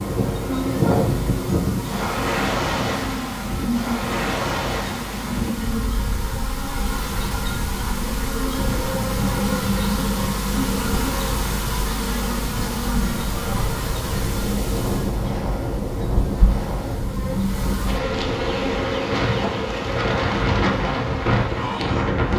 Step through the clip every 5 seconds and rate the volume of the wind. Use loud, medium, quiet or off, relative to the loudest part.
loud, medium, medium, medium, loud.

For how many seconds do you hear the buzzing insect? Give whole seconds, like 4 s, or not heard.
22 s.